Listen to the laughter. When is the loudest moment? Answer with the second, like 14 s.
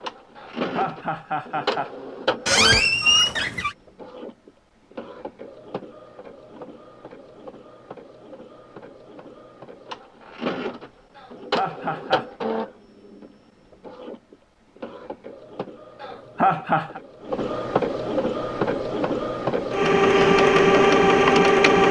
17 s.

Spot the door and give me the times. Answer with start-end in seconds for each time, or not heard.
2.5-3.8.